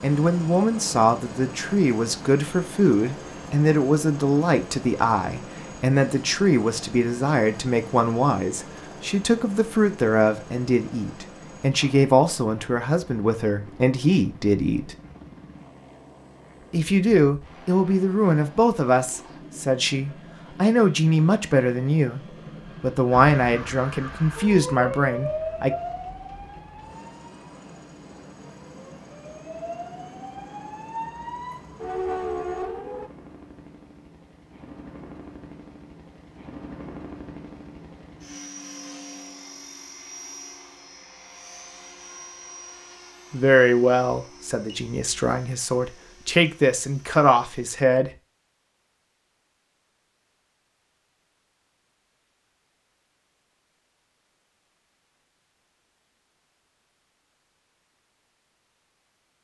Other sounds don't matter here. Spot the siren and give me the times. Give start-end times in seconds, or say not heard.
23.1-33.1.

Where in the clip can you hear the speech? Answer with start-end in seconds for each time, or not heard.
0.0-14.9, 16.7-25.7, 43.3-48.1.